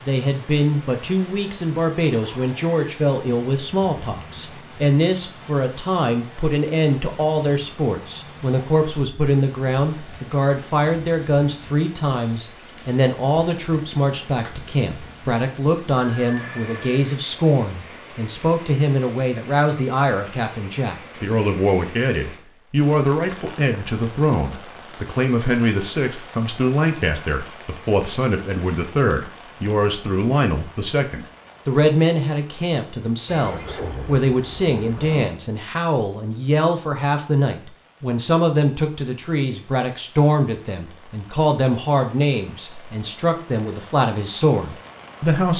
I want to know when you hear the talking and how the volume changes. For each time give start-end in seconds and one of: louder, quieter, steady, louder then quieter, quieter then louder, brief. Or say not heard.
0.0-45.5 steady.